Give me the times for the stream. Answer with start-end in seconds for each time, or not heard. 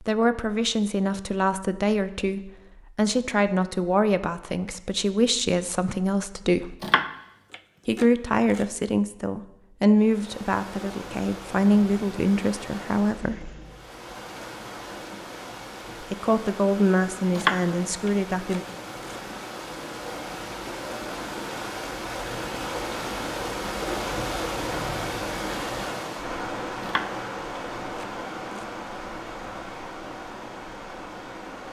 9.9-31.6.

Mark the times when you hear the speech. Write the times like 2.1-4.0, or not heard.
0.0-6.8, 7.8-13.6, 16.0-18.6.